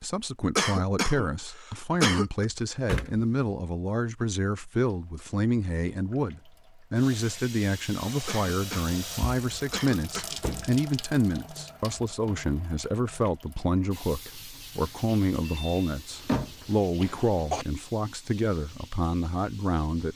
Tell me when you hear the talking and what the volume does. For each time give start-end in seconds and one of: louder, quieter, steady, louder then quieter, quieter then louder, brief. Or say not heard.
0.0-20.1 steady.